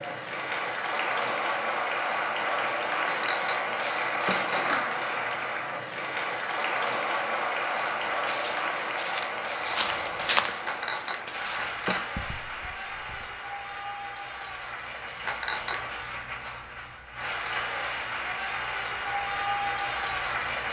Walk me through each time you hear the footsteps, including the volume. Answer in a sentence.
You can hear the footsteps from 7.7 to 13.3 s, getting louder then quieter.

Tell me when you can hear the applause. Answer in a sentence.
You can hear the applause from 0.0 to 20.6 s.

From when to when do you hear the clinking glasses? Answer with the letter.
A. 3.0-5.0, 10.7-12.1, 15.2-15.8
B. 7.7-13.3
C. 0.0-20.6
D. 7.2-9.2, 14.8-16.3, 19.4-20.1
A.